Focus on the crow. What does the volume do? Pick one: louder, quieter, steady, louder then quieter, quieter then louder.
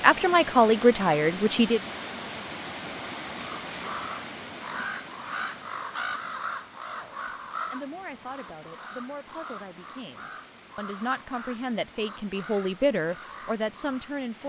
quieter.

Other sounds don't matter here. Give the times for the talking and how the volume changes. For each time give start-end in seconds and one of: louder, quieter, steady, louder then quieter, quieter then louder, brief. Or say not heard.
0.0-1.8 brief
6.9-14.4 louder.